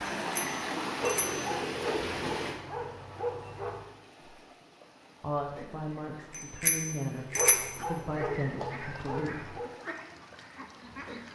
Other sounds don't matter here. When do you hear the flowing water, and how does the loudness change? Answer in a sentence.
You can hear the flowing water from 0.0 to 11.2 s, getting quieter.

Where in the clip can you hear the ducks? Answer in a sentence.
You can hear the ducks from 7.8 to 11.2 s.